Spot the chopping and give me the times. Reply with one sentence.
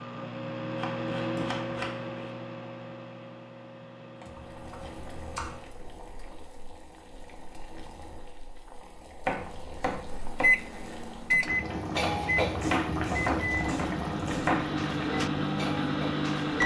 You can hear the chopping from 0.8 to 2.1 s, from 4.2 to 5.5 s, from 9.2 to 10.4 s and from 12.6 to 14.7 s.